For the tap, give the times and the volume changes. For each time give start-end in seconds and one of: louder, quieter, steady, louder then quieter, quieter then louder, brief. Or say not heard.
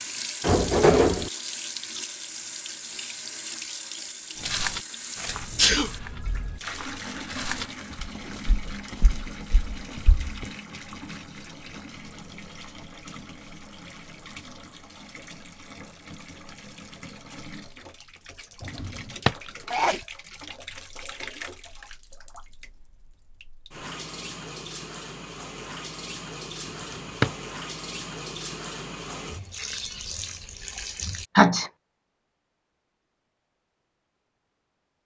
0.0-31.3 quieter then louder.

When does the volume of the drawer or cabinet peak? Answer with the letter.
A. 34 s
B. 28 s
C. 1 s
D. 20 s
C.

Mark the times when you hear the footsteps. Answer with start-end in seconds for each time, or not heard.
4.4-10.4.